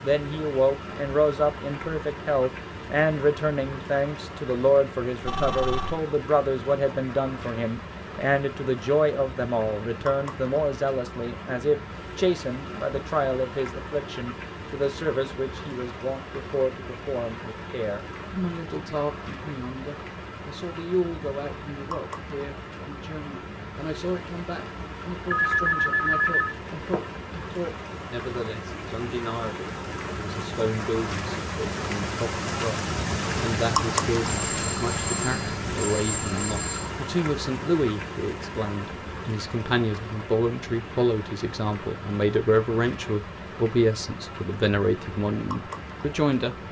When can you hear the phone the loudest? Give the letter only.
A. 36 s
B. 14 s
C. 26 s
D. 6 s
C.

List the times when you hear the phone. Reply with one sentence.
You can hear the phone from 5.2 to 6.0 s, from 25.3 to 27.1 s and from 34.5 to 36.9 s.